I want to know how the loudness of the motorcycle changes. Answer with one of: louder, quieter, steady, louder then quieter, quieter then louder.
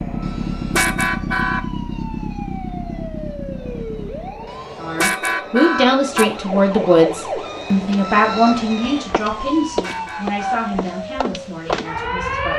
quieter.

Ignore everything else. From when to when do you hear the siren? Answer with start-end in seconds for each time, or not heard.
0.0-12.5.